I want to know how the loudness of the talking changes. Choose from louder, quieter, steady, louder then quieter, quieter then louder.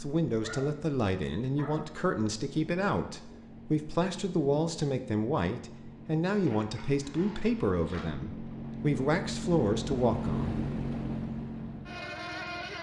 steady.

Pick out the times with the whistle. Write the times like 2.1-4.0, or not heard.
not heard.